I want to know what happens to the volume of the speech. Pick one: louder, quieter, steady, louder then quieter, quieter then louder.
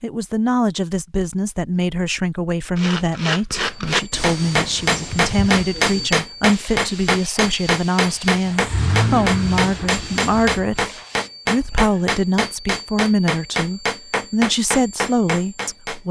steady.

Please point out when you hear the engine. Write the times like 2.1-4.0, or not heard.
8.4-10.6.